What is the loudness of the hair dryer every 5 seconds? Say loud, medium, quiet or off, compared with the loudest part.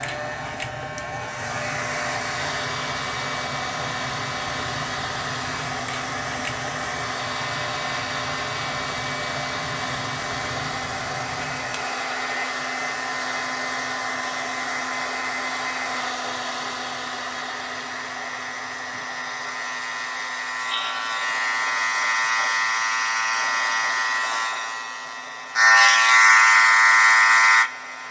loud, loud, loud, loud, quiet, quiet.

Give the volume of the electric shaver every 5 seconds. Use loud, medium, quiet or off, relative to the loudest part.
quiet, quiet, quiet, quiet, medium, loud.